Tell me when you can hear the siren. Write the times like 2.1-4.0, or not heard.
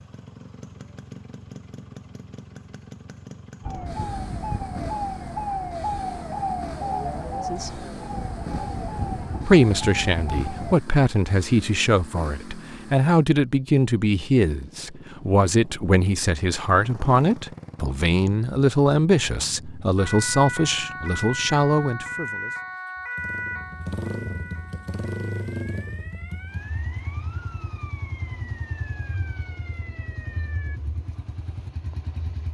3.6-10.8, 19.9-30.8.